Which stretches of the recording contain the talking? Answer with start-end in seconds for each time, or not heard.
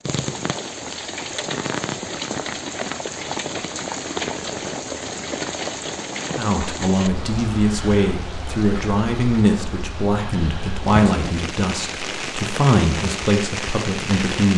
6.3-14.5.